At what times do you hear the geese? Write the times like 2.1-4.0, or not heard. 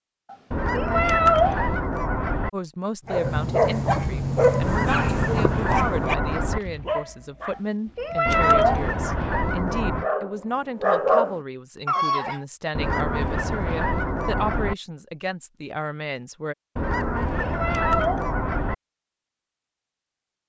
0.5-2.5, 4.5-6.6, 8.2-10.1, 12.7-14.8, 16.8-18.8.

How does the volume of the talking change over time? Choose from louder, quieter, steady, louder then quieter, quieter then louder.
steady.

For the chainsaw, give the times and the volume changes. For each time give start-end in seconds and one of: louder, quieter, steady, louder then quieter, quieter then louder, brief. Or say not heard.
not heard.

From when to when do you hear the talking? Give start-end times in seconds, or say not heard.
2.5-16.6.